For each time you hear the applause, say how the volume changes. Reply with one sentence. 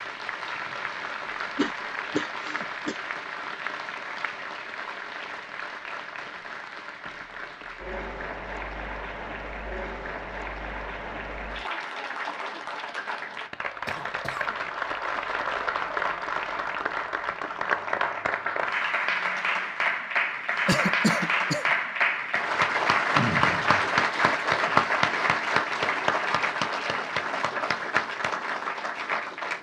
The applause can be heard from 0.0 to 29.5 s, getting louder.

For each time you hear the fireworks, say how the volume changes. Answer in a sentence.
The fireworks can't be heard in this clip.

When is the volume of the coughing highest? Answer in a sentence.
The loudest moment of the coughing is at 21 seconds.